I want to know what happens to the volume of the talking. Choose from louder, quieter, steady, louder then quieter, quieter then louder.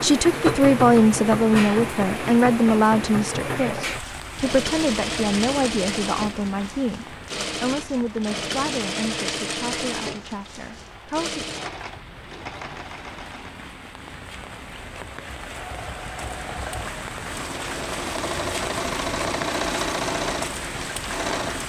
quieter.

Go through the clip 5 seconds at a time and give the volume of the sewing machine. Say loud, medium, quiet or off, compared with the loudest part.
loud, loud, medium, loud, loud.